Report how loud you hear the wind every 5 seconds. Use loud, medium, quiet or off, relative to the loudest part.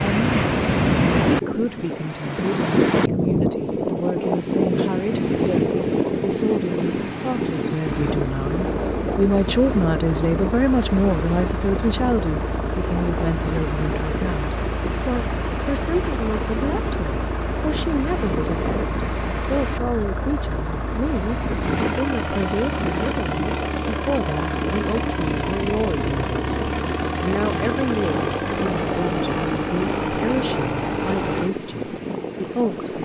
loud, loud, medium, medium, medium, medium, medium.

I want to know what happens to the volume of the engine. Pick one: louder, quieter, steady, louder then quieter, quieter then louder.
louder.